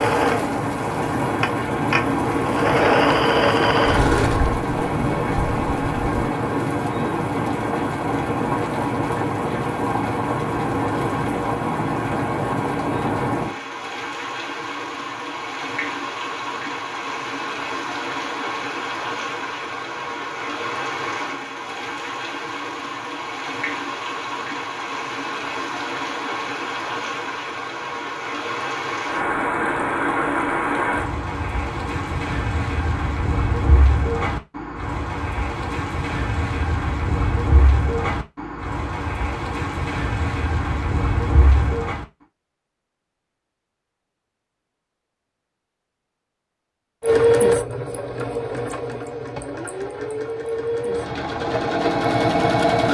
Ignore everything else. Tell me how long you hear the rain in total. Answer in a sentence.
The rain can be heard for 42 seconds in total.